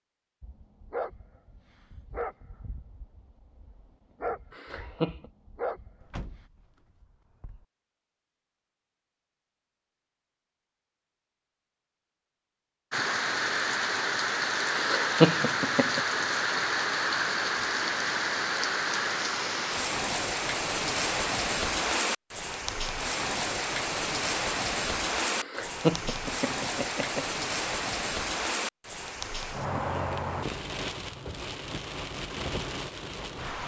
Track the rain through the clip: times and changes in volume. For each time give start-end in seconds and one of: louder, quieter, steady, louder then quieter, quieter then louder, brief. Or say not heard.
12.9-33.6 quieter.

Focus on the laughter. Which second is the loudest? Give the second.
15 s.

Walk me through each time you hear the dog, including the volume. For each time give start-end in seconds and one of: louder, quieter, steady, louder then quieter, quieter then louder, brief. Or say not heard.
0.4-6.2 quieter then louder.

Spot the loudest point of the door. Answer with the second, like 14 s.
6 s.